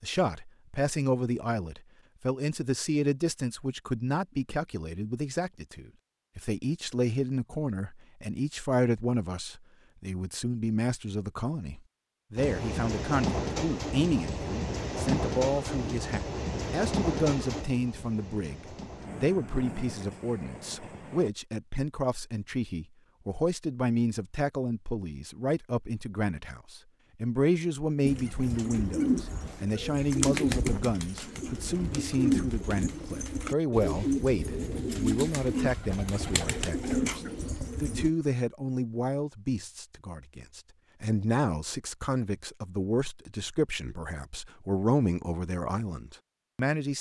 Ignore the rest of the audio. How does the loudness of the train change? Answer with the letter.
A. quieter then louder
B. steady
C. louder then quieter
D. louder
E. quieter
E.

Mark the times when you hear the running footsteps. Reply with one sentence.
You can't hear the running footsteps here.